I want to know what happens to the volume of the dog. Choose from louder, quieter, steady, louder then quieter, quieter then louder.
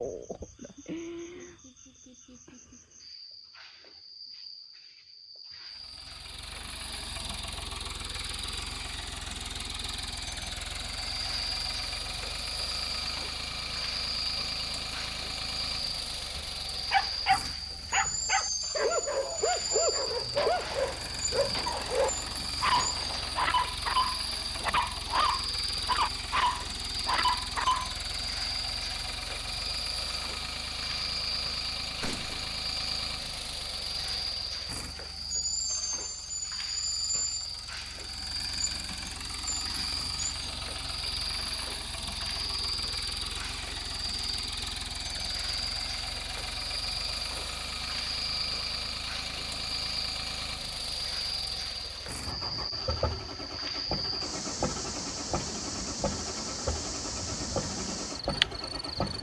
steady.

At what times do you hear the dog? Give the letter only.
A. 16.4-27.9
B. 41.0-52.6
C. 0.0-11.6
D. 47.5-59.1
A.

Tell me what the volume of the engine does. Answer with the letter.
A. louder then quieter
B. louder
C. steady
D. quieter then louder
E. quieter
C.